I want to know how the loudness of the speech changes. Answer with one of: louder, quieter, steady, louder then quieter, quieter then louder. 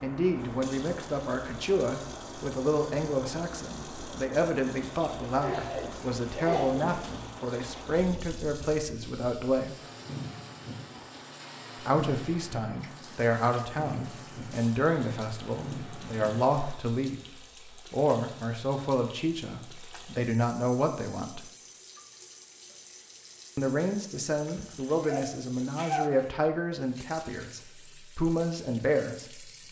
steady.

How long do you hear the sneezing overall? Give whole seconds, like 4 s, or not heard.
3 s.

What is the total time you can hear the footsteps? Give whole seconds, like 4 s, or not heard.
not heard.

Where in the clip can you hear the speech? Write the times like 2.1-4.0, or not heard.
0.0-9.8, 11.8-21.4, 23.6-29.6.